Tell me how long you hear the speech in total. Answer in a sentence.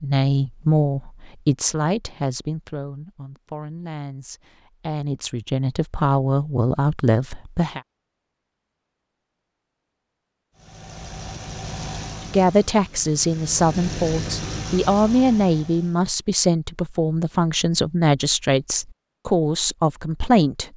The speech can be heard for 16 seconds in total.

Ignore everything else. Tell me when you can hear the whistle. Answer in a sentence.
You can't hear the whistle here.